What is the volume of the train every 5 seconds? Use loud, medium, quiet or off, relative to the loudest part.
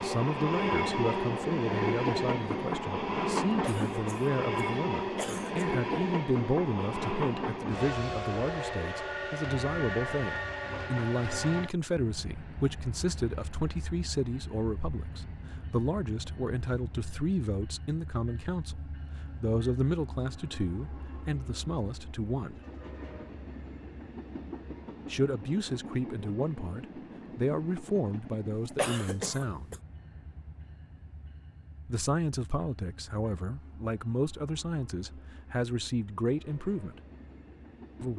loud, loud, medium, quiet, quiet, quiet, quiet, quiet.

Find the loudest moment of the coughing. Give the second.
29 s.